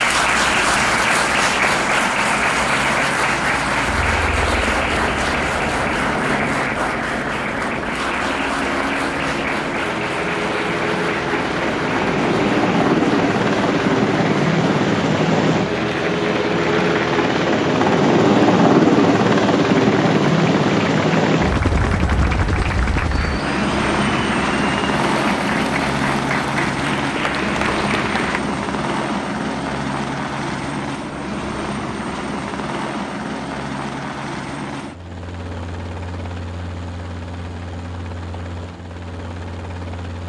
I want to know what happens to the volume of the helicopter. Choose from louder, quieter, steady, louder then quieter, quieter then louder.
louder then quieter.